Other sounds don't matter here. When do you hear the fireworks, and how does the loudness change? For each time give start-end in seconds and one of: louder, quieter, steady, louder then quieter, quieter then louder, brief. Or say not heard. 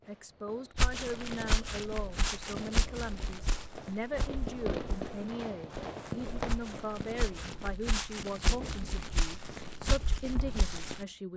0.0-11.3 louder then quieter.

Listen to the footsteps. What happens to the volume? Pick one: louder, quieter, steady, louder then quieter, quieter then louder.
quieter then louder.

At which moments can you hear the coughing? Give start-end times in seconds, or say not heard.
not heard.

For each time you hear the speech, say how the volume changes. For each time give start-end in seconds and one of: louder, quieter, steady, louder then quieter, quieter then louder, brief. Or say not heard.
0.1-11.3 steady.